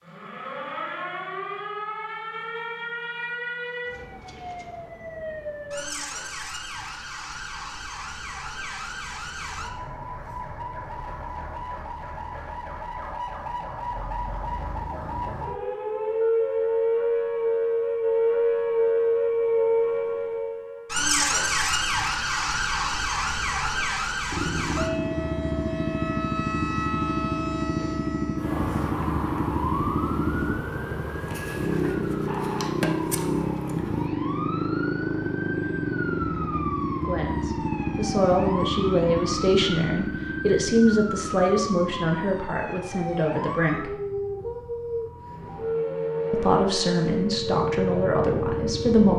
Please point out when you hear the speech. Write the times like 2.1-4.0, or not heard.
37.0-44.0, 46.3-49.1.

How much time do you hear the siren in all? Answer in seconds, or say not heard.
49 s.